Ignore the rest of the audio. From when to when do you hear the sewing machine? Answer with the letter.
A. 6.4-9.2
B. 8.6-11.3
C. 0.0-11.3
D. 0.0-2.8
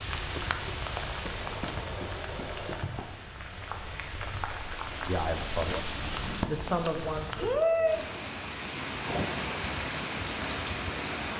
D.